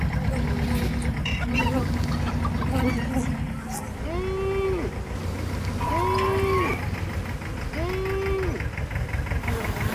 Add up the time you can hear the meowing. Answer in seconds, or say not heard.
4 s.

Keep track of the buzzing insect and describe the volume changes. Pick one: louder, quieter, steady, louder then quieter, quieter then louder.
steady.